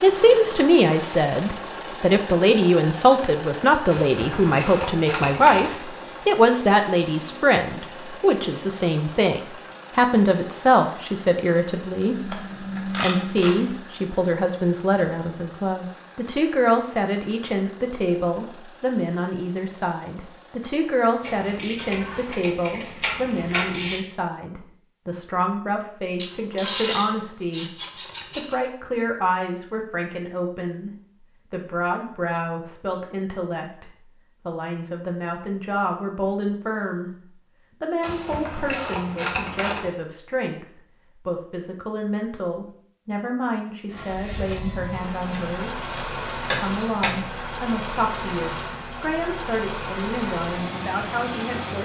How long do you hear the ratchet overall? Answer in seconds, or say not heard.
13 s.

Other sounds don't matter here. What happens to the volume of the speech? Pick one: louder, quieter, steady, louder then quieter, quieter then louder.
quieter.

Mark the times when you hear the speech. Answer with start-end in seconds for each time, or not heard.
0.0-45.8, 46.6-51.8.